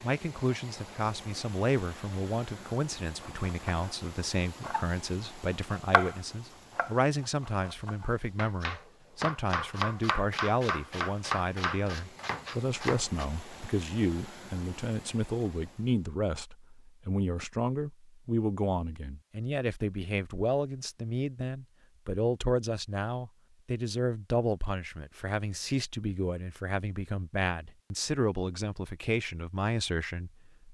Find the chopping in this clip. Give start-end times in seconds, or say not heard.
3.2-13.2.